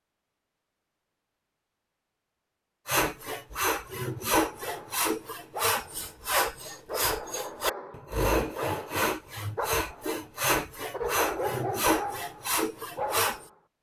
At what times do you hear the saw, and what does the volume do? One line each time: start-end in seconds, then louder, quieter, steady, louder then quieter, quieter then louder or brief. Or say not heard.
2.9-13.4 steady.